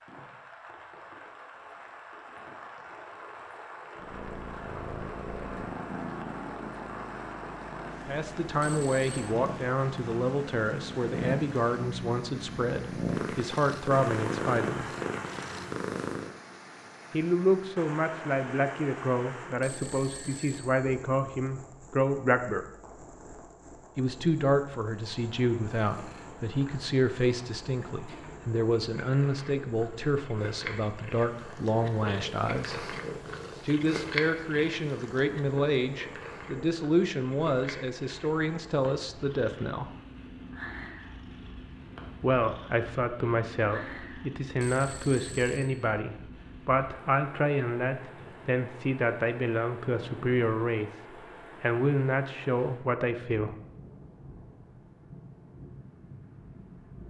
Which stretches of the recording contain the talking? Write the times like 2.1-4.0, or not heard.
8.1-14.9, 17.1-22.6, 23.9-32.9, 33.6-39.9, 42.2-50.9, 51.6-53.5.